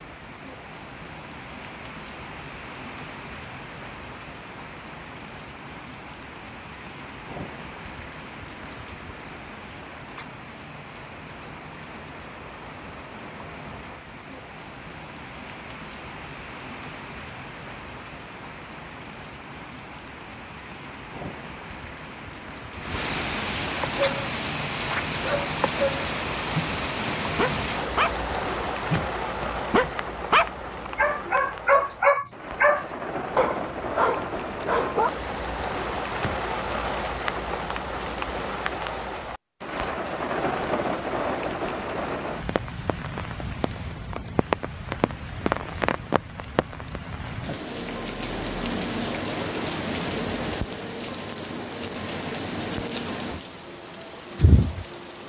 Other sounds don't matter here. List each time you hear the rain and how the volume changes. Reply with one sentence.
The rain can be heard from 0.0 to 55.2 s, getting louder.